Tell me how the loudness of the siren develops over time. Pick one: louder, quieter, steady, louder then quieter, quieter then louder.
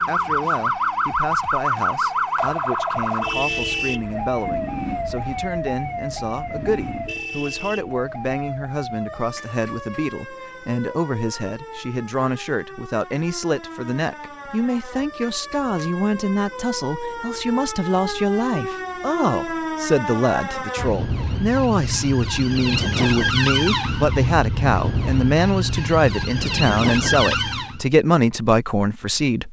quieter then louder.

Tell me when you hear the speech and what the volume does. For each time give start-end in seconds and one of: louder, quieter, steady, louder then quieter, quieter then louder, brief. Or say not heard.
0.0-29.4 louder.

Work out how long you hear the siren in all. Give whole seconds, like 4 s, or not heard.
28 s.